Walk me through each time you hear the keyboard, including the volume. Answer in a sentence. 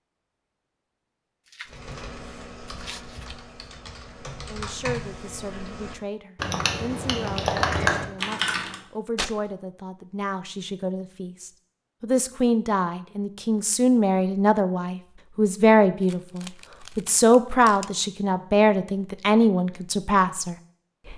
The keyboard can be heard from 1.6 to 8.8 s, getting louder.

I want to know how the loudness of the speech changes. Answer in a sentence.
The volume of the speech goes up.